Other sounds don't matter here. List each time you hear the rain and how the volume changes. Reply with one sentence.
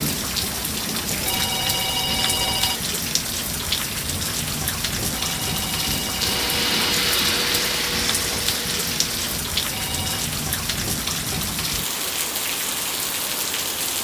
You can hear the rain from 0.0 to 14.0 s, at a steady volume.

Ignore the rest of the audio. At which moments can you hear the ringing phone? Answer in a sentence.
The ringing phone can be heard from 1.1 to 2.8 s, from 5.2 to 6.8 s and from 9.6 to 10.3 s.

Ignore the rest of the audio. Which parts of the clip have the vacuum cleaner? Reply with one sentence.
You can hear the vacuum cleaner from 6.2 to 9.4 s.